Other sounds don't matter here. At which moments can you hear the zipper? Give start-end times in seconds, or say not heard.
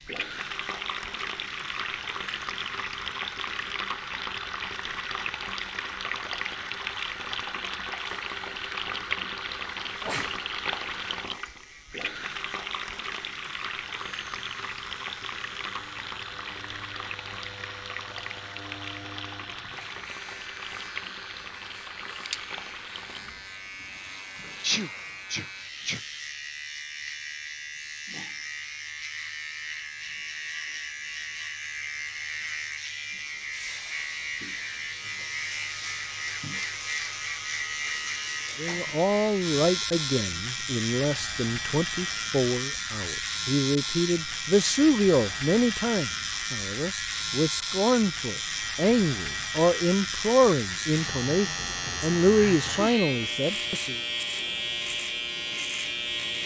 not heard.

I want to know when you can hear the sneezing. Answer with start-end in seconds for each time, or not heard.
10.0-10.4, 24.6-26.0, 52.3-53.0.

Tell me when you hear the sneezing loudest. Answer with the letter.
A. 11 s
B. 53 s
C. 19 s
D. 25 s
D.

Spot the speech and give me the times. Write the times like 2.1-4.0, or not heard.
38.5-54.0.